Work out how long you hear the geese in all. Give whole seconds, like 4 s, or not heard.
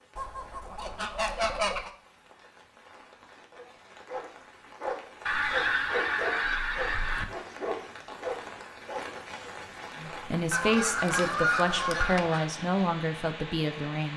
6 s.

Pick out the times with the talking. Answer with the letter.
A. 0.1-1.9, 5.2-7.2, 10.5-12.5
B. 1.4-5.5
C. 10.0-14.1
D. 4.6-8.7
C.